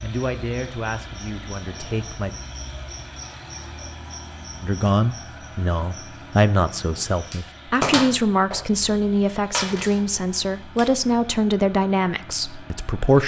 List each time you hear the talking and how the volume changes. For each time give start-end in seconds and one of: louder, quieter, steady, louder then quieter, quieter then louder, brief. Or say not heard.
0.0-2.4 brief
4.6-13.2 steady.